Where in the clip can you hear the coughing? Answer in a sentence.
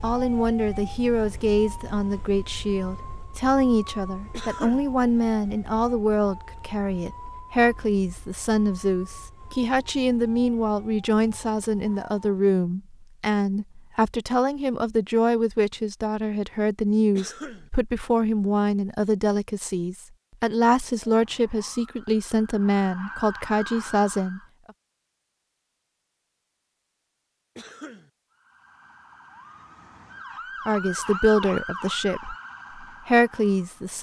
The coughing can be heard from 4.3 to 4.9 s, from 17.1 to 17.7 s and from 27.6 to 28.1 s.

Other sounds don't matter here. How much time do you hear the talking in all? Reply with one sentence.
The talking can be heard for 28 seconds in total.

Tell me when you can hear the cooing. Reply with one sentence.
You can't hear the cooing here.